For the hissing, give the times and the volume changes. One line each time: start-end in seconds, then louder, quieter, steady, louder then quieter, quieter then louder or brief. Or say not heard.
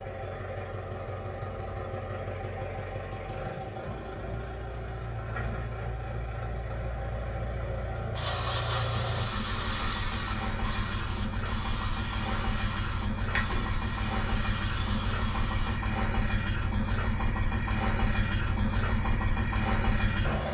8.2-15.8 quieter.